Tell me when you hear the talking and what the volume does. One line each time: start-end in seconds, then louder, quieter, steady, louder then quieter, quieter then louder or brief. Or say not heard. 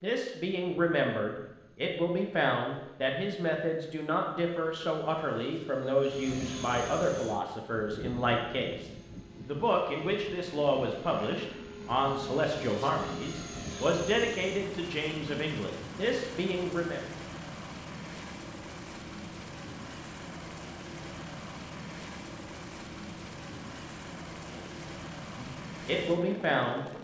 0.0-17.1 steady
24.6-27.0 brief.